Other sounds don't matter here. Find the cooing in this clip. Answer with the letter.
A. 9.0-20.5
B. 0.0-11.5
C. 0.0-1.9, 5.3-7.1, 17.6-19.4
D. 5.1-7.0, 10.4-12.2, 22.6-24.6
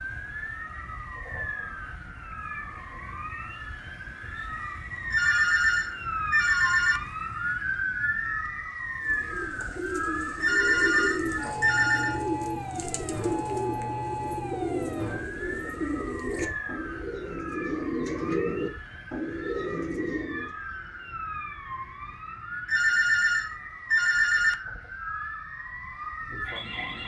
A.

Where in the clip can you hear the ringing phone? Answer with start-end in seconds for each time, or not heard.
5.1-7.0, 10.4-12.2, 22.6-24.6.